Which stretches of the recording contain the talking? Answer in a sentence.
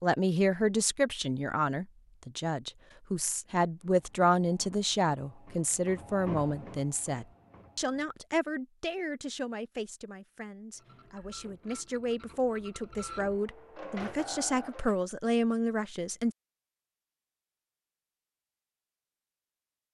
You can hear the talking from 0.0 to 16.4 s.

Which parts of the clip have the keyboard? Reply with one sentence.
The keyboard can't be heard in this clip.